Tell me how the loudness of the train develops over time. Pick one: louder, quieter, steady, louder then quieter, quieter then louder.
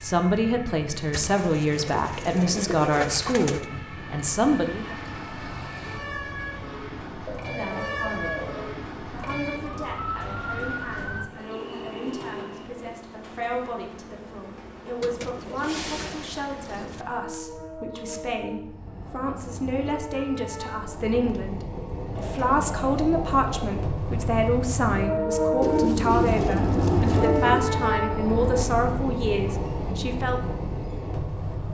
louder.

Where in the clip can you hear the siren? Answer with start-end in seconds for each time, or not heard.
0.0-11.3.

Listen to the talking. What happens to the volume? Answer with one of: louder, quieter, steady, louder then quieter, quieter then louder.
quieter then louder.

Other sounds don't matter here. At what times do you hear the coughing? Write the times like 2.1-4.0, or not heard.
not heard.